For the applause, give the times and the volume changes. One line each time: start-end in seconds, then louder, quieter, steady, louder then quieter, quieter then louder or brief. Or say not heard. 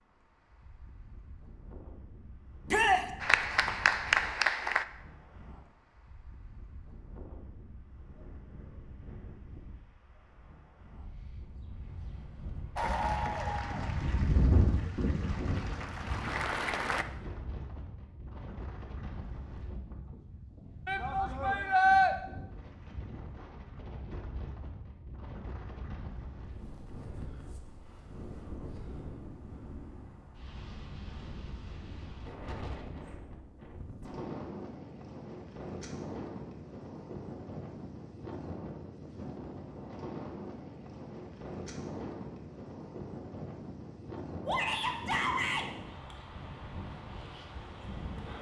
3.2-4.8 brief
12.8-17.1 quieter then louder.